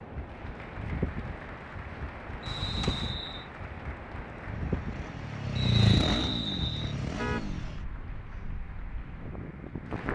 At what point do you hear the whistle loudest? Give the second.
6 s.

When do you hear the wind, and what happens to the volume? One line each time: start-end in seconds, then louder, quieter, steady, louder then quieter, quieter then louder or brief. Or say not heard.
0.0-10.1 quieter.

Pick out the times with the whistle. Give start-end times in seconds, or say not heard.
2.4-3.5, 5.5-7.0.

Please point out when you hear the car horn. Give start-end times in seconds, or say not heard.
2.5-3.1, 7.0-7.5.